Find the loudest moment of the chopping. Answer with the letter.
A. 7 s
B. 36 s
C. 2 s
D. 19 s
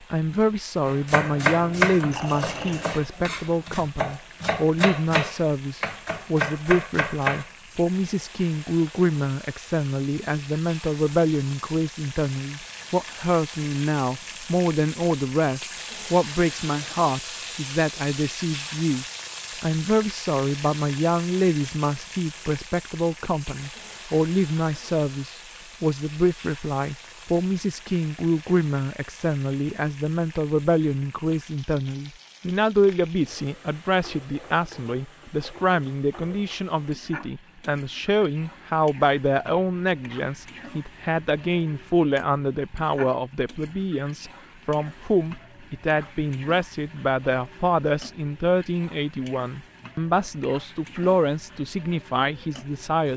C.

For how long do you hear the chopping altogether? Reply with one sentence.
The chopping can be heard for 7 seconds in total.